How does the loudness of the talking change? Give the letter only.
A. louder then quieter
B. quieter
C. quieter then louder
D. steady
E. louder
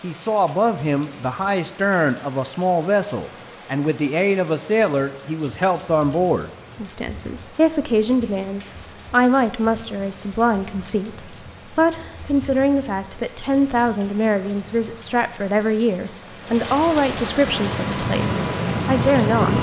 D.